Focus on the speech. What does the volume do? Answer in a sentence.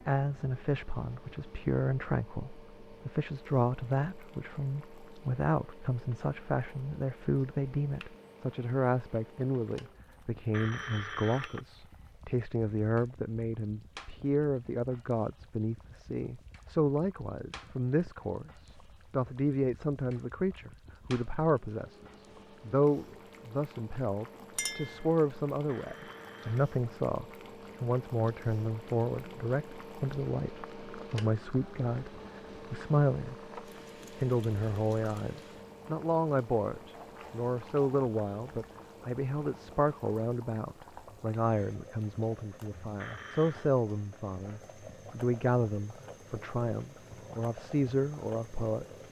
The volume of the speech stays about the same.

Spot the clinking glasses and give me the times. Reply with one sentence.
You can hear the clinking glasses from 24.6 to 25.1 s.